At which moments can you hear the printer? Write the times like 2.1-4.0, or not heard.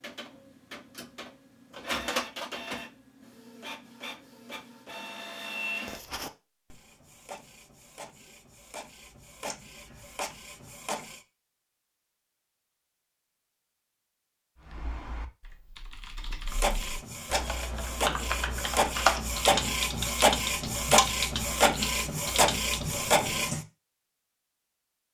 0.0-11.2, 16.4-23.6.